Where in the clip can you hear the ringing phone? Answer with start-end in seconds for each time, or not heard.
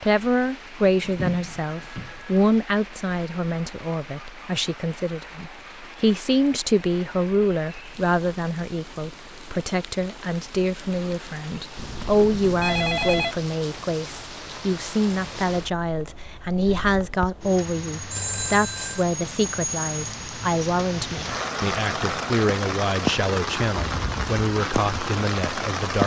0.8-2.4, 11.8-13.3, 18.1-19.1.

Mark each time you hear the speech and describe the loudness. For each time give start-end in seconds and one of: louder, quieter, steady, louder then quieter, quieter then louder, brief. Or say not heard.
0.0-26.0 steady.